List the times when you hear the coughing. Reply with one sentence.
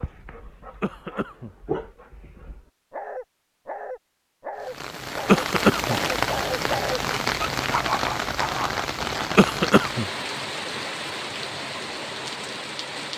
The coughing can be heard from 0.8 to 1.5 s, from 5.2 to 5.9 s and from 9.3 to 10.1 s.